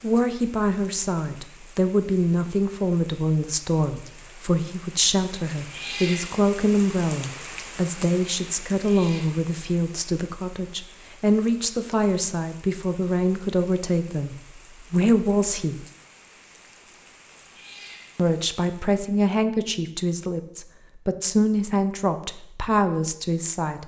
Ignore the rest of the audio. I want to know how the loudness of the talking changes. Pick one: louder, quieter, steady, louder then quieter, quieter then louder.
steady.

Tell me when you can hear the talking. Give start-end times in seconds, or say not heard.
0.0-15.8, 18.1-23.8.